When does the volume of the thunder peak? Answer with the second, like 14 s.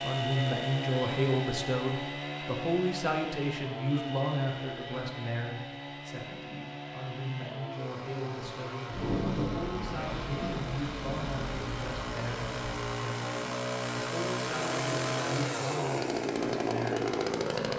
9 s.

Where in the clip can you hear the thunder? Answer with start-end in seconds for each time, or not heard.
8.8-12.8.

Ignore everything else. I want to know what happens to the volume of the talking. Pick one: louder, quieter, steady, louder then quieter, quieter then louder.
quieter.